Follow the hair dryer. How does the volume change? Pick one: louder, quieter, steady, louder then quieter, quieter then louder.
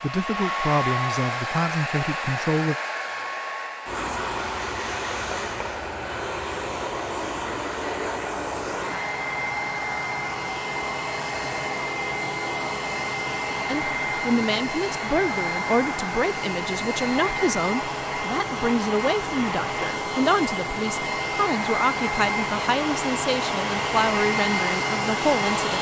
steady.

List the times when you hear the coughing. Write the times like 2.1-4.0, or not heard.
not heard.